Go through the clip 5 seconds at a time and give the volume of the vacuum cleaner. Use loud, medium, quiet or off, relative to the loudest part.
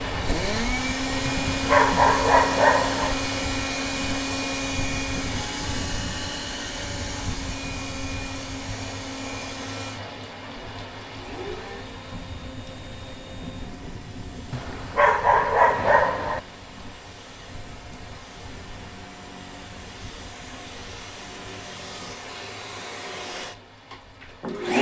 loud, medium, quiet, quiet, loud.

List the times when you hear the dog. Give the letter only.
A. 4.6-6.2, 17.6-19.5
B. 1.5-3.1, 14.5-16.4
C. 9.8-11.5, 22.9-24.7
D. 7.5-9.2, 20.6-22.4
B.